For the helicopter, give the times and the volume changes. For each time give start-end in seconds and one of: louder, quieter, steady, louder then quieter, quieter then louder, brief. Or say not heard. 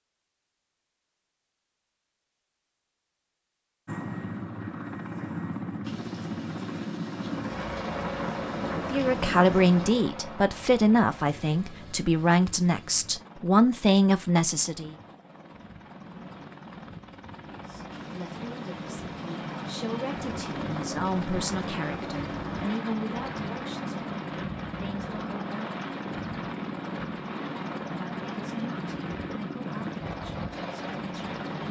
3.9-31.6 quieter then louder.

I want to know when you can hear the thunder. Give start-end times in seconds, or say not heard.
5.8-10.1, 17.9-22.9.